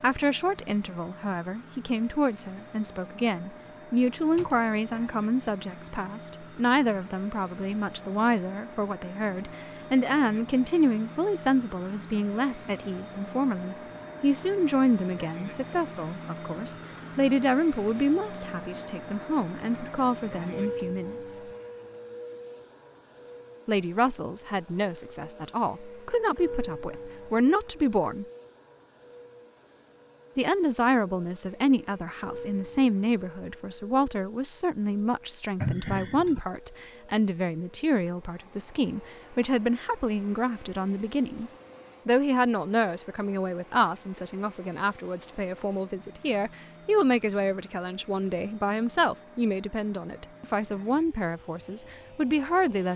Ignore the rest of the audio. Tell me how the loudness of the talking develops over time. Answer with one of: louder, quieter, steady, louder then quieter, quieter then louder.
steady.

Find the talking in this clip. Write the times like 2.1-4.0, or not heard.
0.0-21.4, 23.6-28.2, 30.4-52.9.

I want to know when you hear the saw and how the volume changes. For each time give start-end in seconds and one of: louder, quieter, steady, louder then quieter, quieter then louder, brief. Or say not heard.
not heard.